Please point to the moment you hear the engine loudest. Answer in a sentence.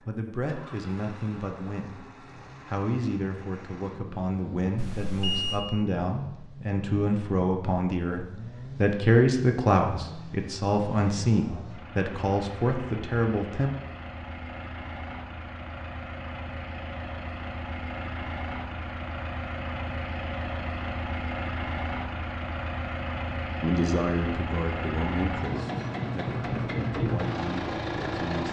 The loudest moment of the engine is at 27 seconds.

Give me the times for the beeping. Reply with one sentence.
The beeping can be heard from 4.8 to 5.6 s.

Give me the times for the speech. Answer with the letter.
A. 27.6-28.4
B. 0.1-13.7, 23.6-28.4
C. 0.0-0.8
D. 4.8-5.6
B.